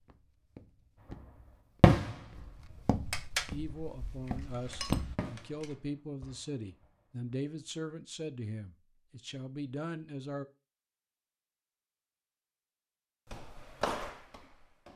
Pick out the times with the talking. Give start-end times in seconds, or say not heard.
3.5-10.4.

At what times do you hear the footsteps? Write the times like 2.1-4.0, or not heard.
0.0-5.2, 13.2-14.9.